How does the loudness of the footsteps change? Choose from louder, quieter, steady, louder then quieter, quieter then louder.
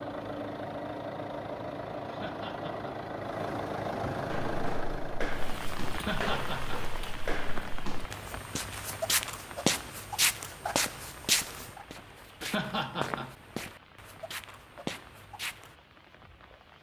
louder then quieter.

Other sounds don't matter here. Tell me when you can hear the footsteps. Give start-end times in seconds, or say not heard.
4.3-15.8.